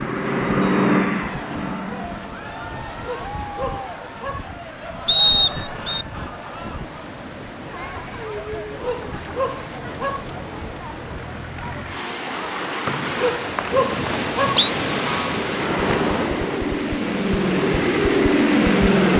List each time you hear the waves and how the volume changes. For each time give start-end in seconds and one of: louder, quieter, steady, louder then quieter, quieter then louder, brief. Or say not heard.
0.0-19.1 louder.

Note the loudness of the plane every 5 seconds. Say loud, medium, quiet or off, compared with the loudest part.
loud, off, off, loud.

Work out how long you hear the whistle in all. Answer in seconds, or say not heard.
3 s.